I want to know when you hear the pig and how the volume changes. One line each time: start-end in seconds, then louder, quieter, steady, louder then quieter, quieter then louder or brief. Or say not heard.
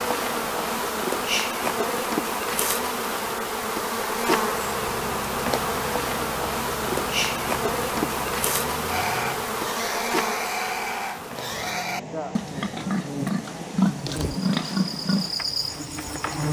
8.8-15.3 louder.